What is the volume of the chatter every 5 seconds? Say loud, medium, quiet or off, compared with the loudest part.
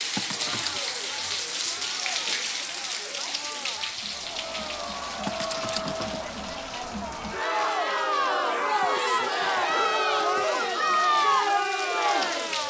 quiet, loud, loud.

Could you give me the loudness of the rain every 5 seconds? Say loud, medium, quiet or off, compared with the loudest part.
loud, medium, medium.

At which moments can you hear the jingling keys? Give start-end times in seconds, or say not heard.
0.1-0.8, 5.2-6.2, 8.8-10.6.